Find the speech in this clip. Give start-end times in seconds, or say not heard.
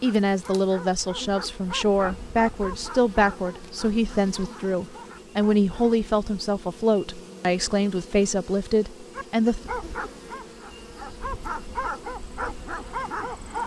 0.0-9.7.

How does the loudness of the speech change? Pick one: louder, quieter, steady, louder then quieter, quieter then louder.
steady.